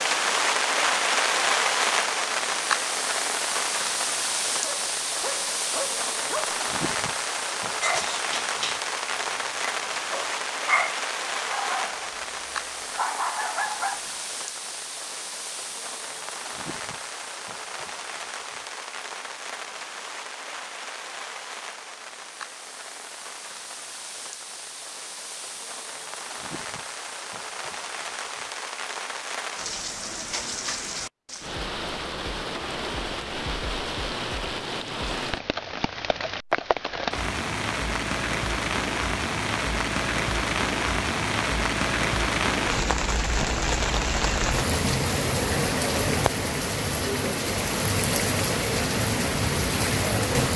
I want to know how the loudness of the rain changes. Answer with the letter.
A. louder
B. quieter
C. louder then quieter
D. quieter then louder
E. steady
D.